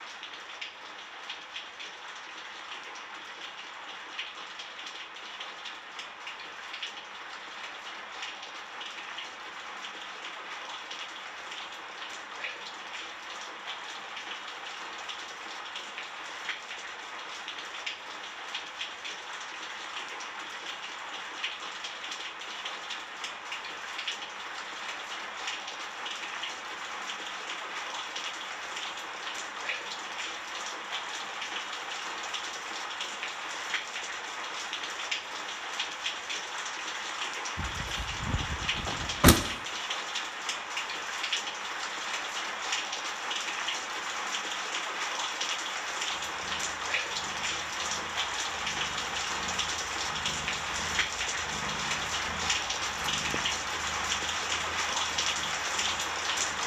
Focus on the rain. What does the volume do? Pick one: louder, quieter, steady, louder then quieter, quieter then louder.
louder.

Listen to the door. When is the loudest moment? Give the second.
39 s.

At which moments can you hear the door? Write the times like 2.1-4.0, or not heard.
37.5-39.4.